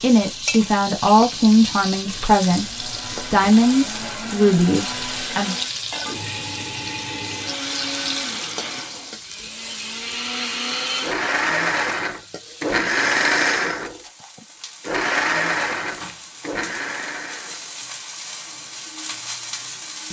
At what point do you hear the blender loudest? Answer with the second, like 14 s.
13 s.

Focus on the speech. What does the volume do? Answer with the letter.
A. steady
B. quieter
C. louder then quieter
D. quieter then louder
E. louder
A.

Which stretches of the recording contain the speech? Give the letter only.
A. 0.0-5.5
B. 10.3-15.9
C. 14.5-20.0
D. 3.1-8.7
A.